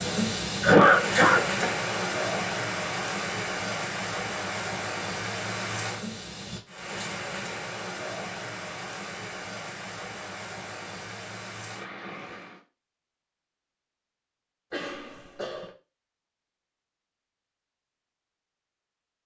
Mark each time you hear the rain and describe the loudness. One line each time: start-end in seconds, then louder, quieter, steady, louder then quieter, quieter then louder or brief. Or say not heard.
0.0-12.7 quieter.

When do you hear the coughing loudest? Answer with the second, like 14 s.
1 s.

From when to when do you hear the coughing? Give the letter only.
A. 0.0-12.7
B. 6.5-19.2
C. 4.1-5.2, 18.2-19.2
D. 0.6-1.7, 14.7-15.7
D.